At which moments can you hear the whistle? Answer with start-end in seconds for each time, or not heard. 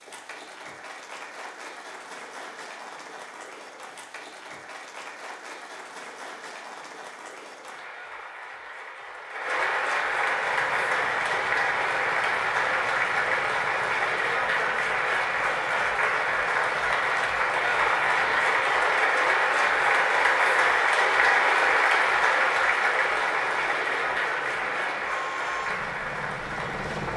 not heard.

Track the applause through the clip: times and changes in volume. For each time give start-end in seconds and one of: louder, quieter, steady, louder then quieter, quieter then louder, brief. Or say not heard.
0.0-27.1 louder.